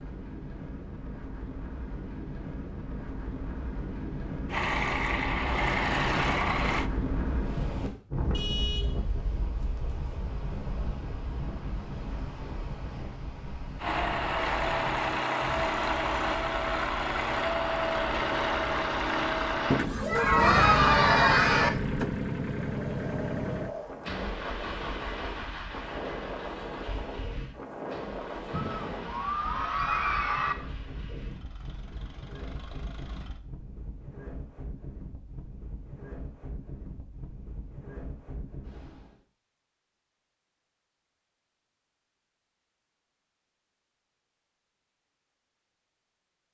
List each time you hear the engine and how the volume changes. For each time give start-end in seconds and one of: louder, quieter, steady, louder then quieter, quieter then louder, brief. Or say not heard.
4.5-6.9 brief
13.8-33.4 quieter.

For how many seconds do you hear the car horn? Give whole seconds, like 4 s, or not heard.
2 s.